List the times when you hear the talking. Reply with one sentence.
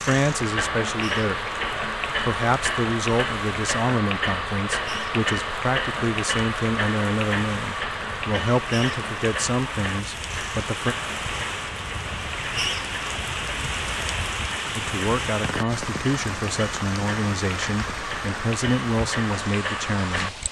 The talking can be heard from 0.1 to 10.9 s and from 14.8 to 20.4 s.